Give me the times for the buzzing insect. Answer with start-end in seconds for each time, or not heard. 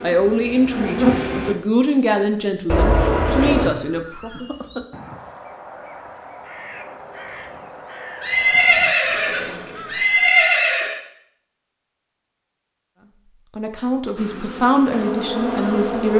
0.0-1.6, 14.2-16.1.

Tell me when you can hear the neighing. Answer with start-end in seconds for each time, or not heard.
2.6-3.7, 8.2-10.9.